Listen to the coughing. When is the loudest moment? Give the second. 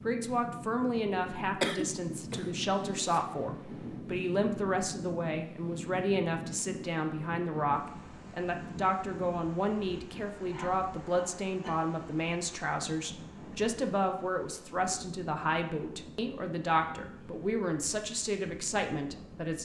2 s.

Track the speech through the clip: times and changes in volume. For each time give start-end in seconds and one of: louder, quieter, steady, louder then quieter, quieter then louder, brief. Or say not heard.
0.0-19.6 steady.